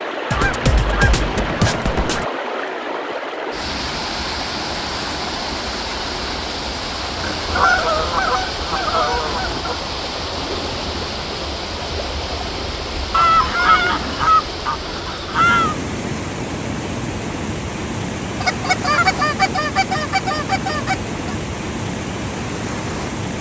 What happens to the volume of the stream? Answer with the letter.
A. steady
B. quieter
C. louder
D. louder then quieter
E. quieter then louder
A.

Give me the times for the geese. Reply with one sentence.
The geese can be heard from 0.3 to 2.2 s, from 7.2 to 9.8 s, from 13.1 to 15.8 s and from 18.4 to 21.4 s.